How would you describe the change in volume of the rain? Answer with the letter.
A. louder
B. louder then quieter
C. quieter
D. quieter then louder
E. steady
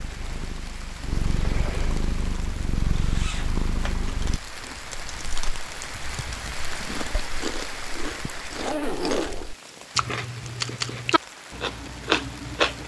B.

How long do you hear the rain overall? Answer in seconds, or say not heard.
13 s.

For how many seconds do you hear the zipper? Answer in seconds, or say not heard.
2 s.